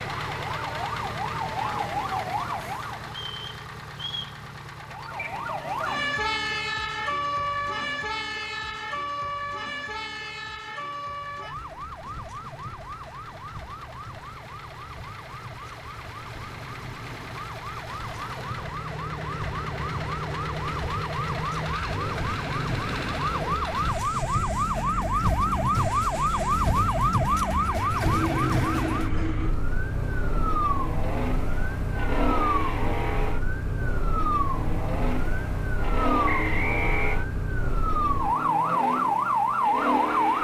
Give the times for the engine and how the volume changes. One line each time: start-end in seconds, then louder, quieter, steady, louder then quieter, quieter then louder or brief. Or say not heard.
0.0-40.3 quieter then louder.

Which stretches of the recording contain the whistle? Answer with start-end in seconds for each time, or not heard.
3.0-4.3, 36.2-37.2.